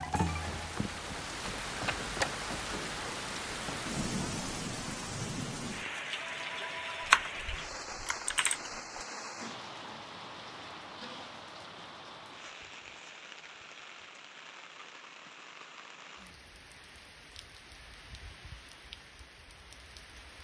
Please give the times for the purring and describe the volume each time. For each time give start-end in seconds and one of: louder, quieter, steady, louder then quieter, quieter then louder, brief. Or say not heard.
not heard.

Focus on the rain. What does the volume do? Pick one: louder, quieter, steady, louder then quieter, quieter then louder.
quieter.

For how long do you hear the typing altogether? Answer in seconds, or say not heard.
2 s.